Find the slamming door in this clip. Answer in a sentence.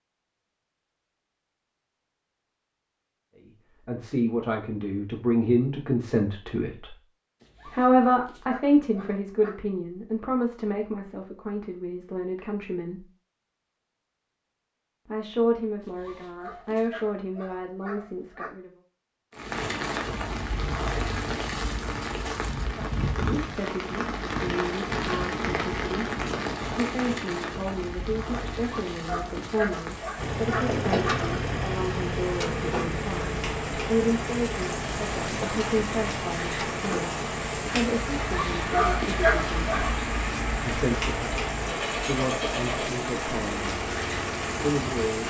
The slamming door can't be heard in this clip.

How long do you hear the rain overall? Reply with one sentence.
The rain can be heard for 26 seconds in total.